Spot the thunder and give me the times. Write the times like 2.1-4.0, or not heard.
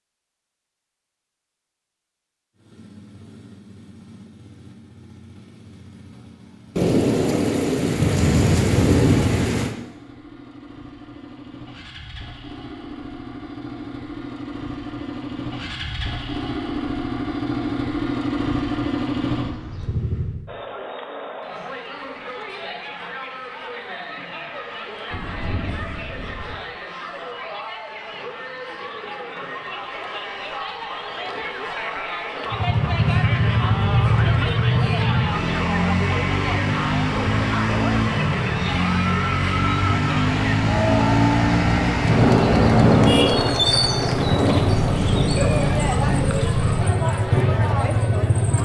6.8-9.8, 25.1-26.6, 42.0-46.4.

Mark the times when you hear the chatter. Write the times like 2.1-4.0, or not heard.
20.4-48.6.